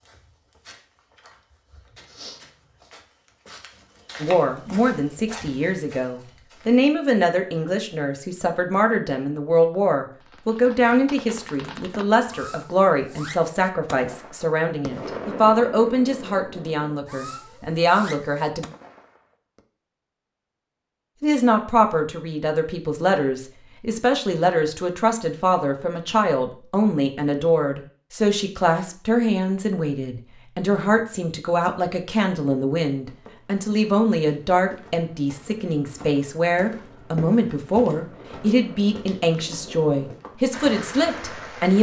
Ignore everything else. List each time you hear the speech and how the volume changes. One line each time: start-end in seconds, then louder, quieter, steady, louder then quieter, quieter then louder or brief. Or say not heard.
4.2-18.6 steady
21.2-41.7 steady.